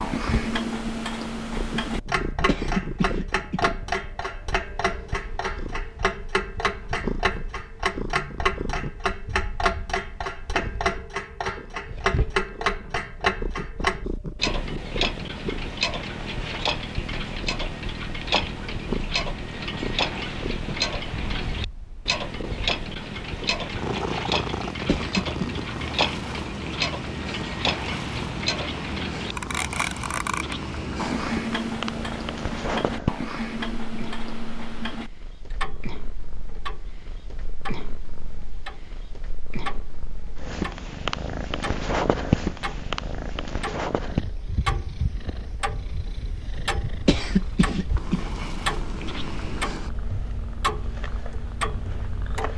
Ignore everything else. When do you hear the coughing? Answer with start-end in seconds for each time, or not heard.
2.5-3.6, 24.9-25.5, 47.0-48.2.